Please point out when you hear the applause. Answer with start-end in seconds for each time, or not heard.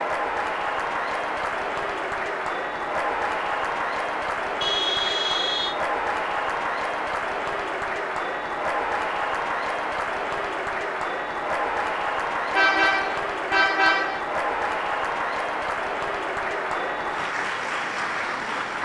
0.0-18.8.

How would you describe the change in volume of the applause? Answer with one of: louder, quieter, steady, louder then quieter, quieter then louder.
steady.